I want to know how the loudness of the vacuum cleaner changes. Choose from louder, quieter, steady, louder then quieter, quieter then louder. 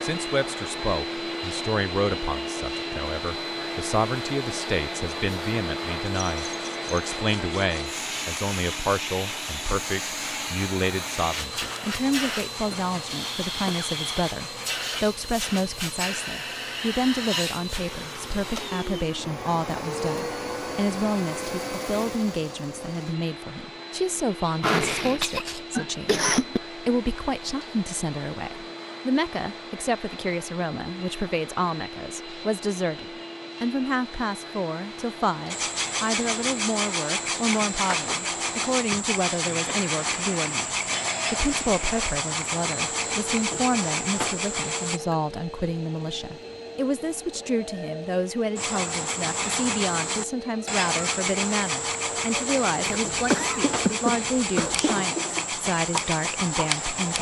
quieter.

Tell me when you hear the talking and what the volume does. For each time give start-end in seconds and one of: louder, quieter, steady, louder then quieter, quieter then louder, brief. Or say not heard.
0.0-57.1 steady.